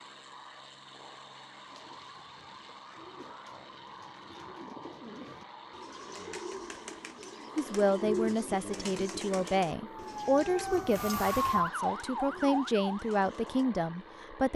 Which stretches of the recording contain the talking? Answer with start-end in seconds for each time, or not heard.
7.5-14.5.